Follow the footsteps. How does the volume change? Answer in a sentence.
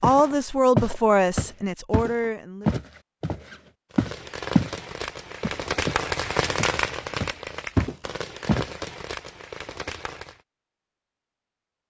The loudness of the footsteps goes down, then up.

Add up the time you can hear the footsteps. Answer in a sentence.
You can hear the footsteps for 8 seconds altogether.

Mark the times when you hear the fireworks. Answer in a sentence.
The fireworks can be heard from 3.9 to 10.4 s.